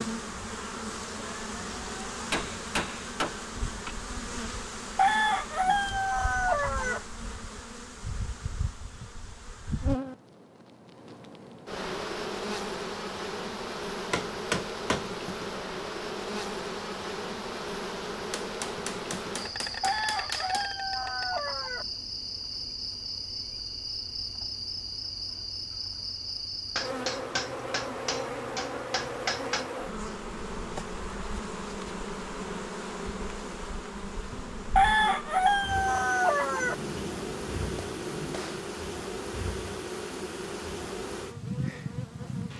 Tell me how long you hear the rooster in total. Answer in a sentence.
You can hear the rooster for 6 seconds altogether.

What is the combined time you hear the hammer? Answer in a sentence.
The hammer can be heard for 10 seconds in total.